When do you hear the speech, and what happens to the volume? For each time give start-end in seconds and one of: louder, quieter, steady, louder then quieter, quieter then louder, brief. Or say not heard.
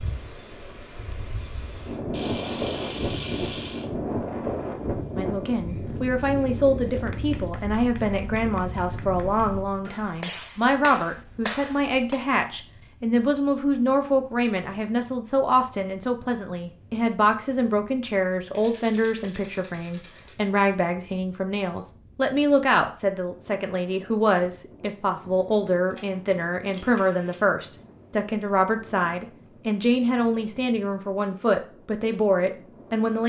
5.2-33.2 steady.